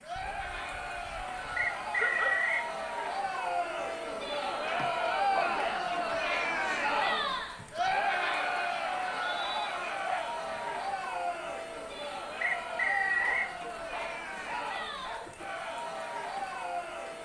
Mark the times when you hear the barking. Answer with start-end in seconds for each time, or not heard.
0.1-2.5, 4.7-5.8, 10.0-10.7, 13.2-15.4.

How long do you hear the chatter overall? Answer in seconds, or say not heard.
17 s.